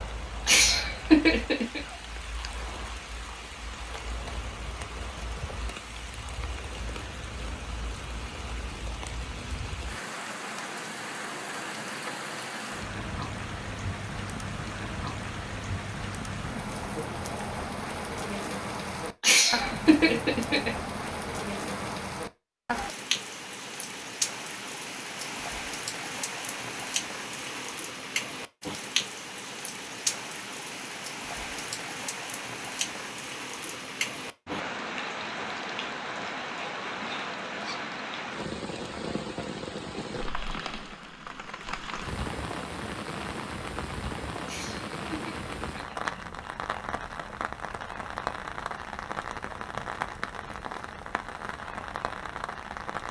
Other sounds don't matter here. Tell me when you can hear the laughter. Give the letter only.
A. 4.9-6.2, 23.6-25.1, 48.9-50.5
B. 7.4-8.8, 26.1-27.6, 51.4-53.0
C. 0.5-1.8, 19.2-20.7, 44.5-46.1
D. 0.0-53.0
C.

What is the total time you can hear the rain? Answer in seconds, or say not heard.
53 s.